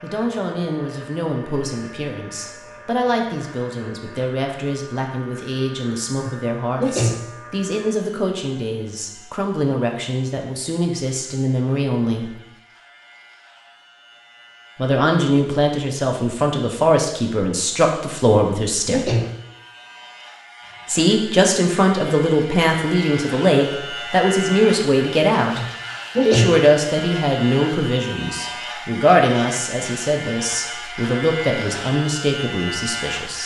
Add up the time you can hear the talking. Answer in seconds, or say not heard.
29 s.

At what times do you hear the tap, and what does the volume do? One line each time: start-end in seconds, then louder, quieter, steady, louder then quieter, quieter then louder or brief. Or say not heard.
not heard.